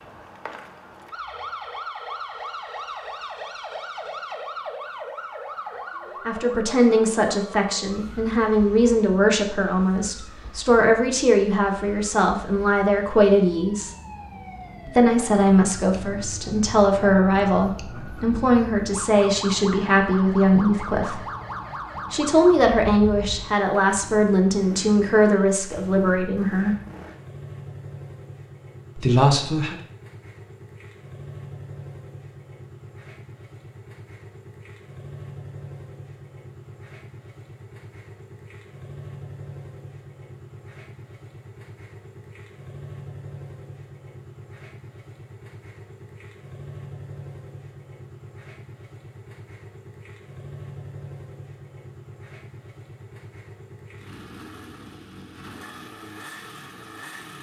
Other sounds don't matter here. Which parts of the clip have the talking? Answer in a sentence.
The talking can be heard from 6.2 to 13.9 s, from 14.8 to 21.2 s, from 22.1 to 26.8 s and from 28.9 to 29.8 s.